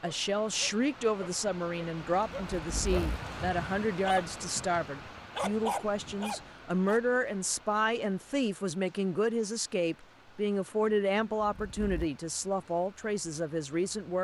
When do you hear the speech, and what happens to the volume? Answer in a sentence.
The speech can be heard from 0.0 to 14.1 s, at a steady volume.